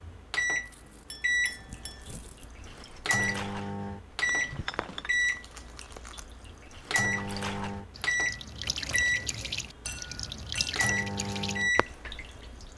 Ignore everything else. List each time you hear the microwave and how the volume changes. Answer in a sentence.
You can hear the microwave from 0.0 to 12.7 s, at a steady volume.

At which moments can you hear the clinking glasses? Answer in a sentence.
The clinking glasses can be heard from 1.1 to 2.1 s, from 4.2 to 5.1 s and from 9.8 to 10.8 s.